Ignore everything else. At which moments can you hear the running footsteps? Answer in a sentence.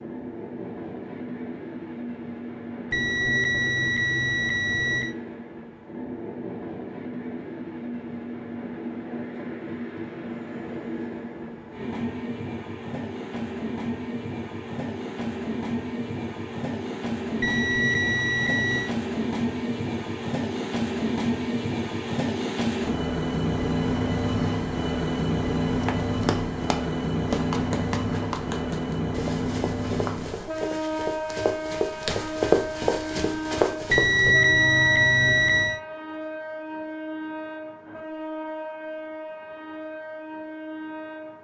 The running footsteps can be heard from 25.6 to 34.4 s.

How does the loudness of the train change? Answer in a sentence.
The volume of the train goes up, then down.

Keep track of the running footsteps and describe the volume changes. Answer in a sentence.
The loudness of the running footsteps goes up.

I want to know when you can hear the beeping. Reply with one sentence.
You can hear the beeping from 2.9 to 5.2 s, from 17.4 to 18.9 s and from 33.9 to 35.8 s.